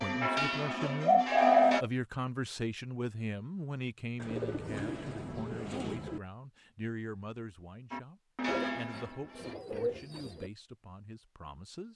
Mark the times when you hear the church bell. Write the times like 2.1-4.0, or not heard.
0.0-1.9, 7.9-9.6.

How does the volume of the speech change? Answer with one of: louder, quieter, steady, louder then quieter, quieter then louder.
quieter.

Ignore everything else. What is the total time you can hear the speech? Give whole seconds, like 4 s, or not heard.
12 s.